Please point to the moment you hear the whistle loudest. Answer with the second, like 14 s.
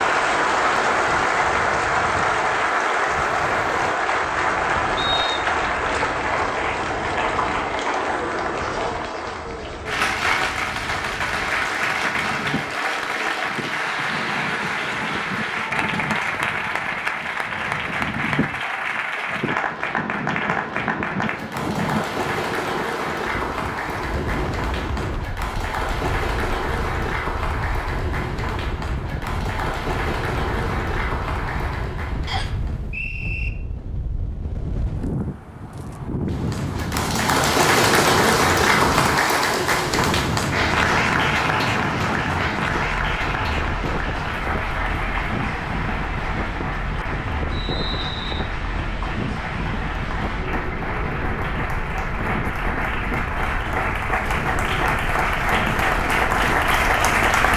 5 s.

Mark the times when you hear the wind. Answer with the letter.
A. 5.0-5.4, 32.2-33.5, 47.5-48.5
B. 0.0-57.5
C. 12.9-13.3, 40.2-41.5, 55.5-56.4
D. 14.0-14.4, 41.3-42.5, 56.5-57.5
B.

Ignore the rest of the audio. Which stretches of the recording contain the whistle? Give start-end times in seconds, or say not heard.
5.0-5.4, 32.2-33.5, 47.5-48.5.